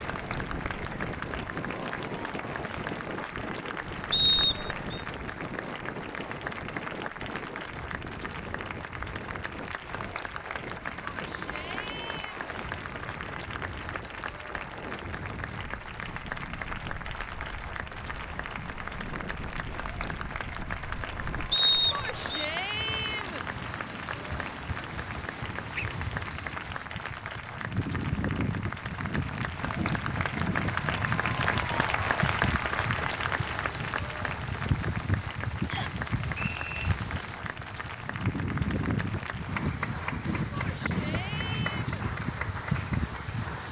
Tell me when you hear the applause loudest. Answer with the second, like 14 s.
32 s.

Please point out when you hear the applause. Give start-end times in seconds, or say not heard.
0.0-43.6.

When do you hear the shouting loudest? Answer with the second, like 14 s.
23 s.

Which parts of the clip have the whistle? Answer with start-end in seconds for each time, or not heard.
4.1-5.0, 21.5-22.4, 35.7-36.9.